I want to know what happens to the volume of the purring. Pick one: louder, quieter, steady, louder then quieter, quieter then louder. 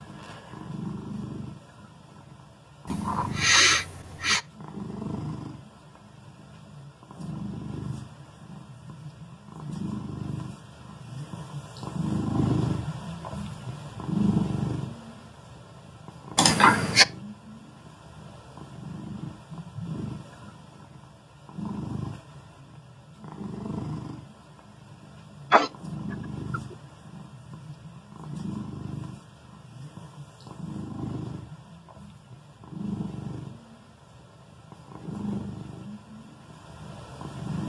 louder then quieter.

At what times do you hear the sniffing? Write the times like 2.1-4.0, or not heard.
2.9-4.4, 16.4-17.1, 25.5-26.6.